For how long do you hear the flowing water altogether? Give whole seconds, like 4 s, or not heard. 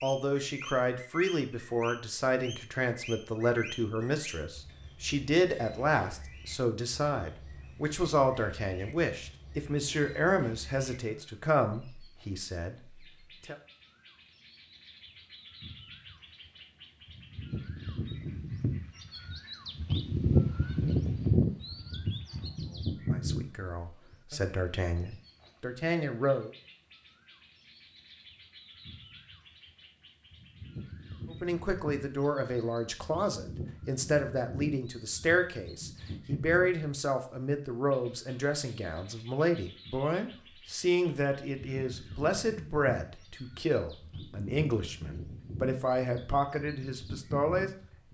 not heard.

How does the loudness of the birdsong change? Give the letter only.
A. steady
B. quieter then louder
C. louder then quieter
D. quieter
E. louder
C.